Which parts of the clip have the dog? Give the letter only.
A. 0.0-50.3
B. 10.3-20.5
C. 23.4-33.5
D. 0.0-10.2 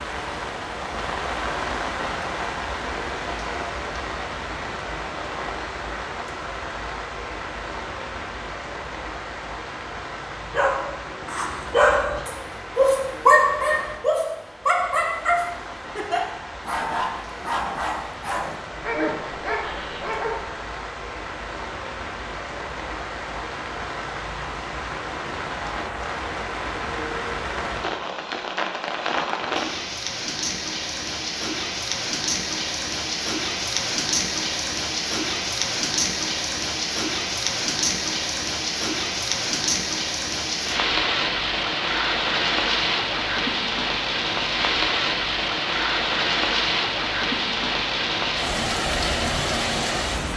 B.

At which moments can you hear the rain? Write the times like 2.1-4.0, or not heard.
0.0-50.3.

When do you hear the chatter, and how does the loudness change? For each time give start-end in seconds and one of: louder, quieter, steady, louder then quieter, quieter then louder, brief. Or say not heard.
not heard.